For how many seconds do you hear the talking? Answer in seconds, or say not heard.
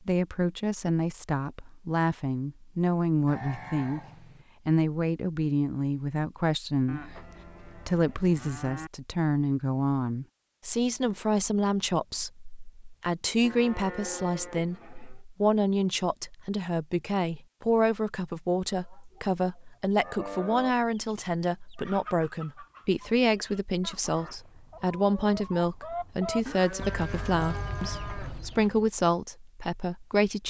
30 s.